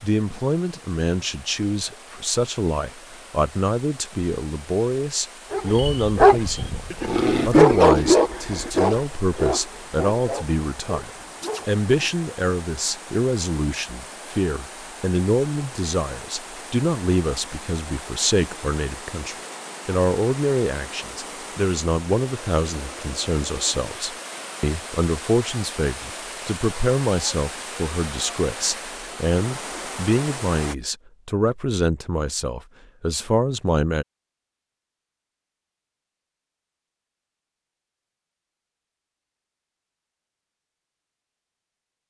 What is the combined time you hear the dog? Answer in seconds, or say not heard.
7 s.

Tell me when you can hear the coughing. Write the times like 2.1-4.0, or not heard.
not heard.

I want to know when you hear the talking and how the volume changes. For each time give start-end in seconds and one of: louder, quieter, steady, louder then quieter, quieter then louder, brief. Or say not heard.
0.0-6.8 steady
7.5-34.0 steady.